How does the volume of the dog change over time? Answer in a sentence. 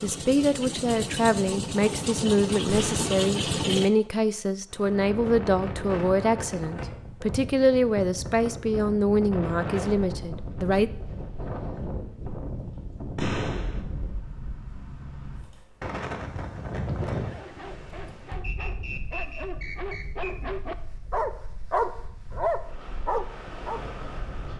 The loudness of the dog goes up.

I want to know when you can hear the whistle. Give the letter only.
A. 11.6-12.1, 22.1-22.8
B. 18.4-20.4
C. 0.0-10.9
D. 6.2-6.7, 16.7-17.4
B.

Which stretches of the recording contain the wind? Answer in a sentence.
The wind can be heard from 4.7 to 24.5 s.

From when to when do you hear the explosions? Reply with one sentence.
The explosions can be heard from 2.6 to 3.1 s and from 13.2 to 13.8 s.